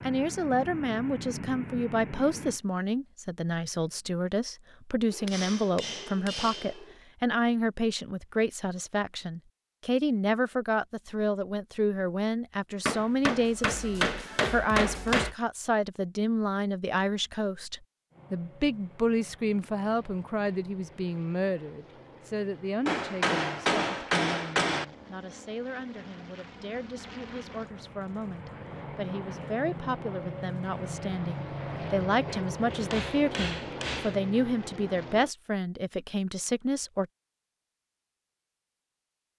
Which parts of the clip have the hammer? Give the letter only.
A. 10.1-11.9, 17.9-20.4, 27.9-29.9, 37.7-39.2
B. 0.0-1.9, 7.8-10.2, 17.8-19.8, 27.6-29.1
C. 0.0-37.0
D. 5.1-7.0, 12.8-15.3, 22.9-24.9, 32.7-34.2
D.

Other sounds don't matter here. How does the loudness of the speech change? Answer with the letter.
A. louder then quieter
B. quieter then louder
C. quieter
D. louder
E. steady
B.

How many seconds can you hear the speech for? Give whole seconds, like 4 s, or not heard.
37 s.